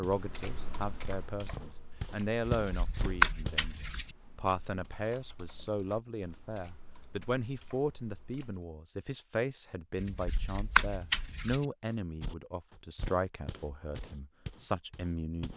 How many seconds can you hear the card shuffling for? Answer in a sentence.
The card shuffling can be heard for 3 seconds in total.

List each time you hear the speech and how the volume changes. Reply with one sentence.
You can hear the speech from 0.0 to 15.5 s, at a steady volume.